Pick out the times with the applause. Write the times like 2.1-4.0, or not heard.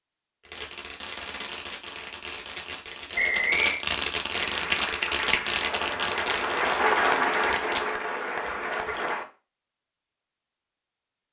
4.3-9.2.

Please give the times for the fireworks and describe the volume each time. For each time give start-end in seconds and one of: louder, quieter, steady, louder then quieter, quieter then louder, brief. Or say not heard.
0.5-7.8 louder then quieter.